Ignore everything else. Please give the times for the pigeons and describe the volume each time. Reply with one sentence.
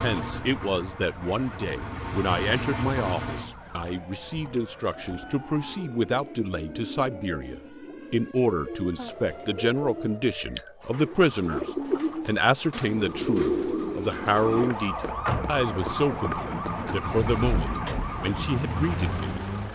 You can hear the pigeons from 5.0 to 14.7 s, getting louder.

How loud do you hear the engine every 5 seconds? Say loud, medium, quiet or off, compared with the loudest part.
loud, off, off, loud.